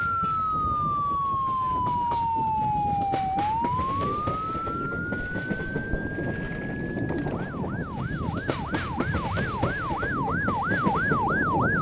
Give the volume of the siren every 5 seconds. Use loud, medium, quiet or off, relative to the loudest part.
loud, medium, loud.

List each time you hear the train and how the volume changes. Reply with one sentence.
The train can be heard from 0.0 to 11.7 s, getting louder.